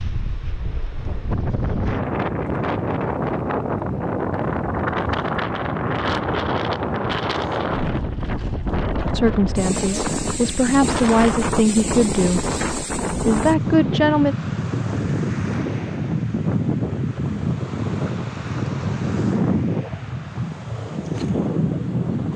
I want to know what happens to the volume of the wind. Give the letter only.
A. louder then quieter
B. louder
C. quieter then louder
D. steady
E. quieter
D.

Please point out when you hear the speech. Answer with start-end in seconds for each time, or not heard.
9.1-12.4, 13.2-14.3.